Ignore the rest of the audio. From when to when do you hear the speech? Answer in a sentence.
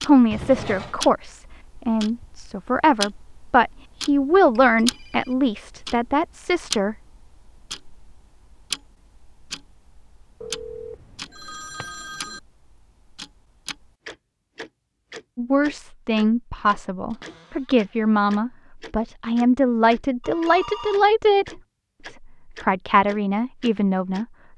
The speech can be heard from 0.0 to 7.0 s, from 15.3 to 21.5 s and from 22.6 to 24.2 s.